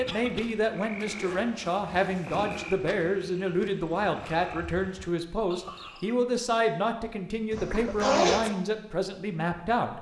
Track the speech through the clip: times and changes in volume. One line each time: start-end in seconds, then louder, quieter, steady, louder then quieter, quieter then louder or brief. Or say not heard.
0.0-9.9 steady.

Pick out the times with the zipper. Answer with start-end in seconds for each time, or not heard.
1.1-2.8, 7.5-8.4.